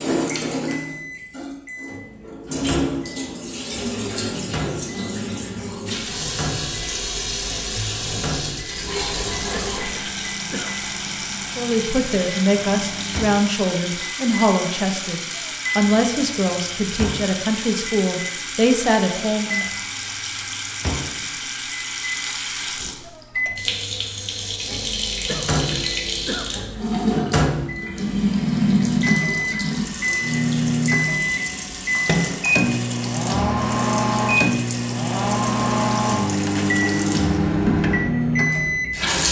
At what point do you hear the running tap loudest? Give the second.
29 s.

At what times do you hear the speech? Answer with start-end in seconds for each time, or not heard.
11.4-19.6.